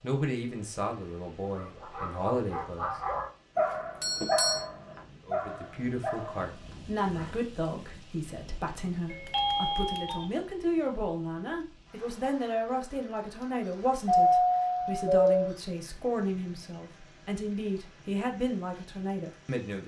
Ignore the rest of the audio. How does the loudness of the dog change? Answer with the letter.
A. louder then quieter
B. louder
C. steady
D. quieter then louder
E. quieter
A.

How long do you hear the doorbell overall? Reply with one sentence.
You can hear the doorbell for 3 seconds altogether.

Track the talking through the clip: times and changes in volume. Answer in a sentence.
You can hear the talking briefly from 0.0 to 2.9 s; and from 5.2 to 19.8 s, at a steady volume.